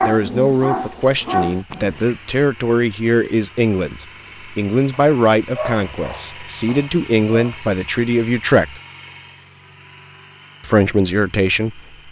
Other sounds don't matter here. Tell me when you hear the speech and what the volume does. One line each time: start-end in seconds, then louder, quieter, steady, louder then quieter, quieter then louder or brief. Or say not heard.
0.0-8.8 steady
10.6-11.8 brief.